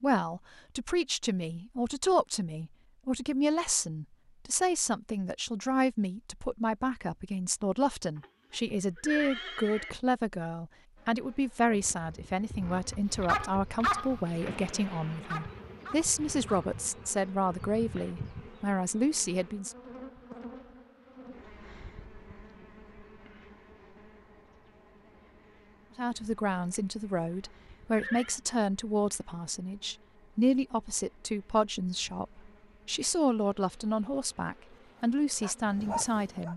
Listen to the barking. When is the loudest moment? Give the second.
14 s.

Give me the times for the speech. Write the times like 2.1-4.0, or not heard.
0.0-19.8, 25.9-36.5.